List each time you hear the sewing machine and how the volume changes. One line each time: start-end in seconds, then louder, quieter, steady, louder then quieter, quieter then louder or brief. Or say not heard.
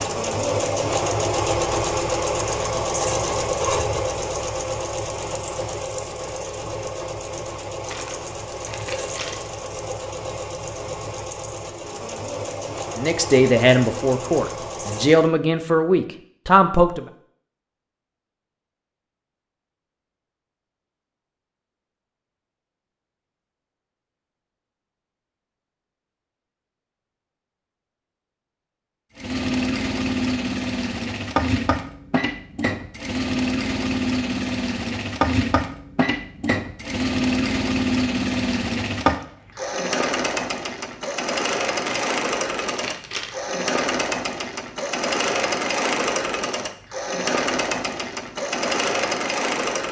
0.0-15.3 quieter
29.1-49.8 steady.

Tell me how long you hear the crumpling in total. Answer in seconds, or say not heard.
3 s.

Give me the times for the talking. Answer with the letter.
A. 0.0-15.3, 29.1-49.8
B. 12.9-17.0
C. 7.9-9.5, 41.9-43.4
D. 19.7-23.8
B.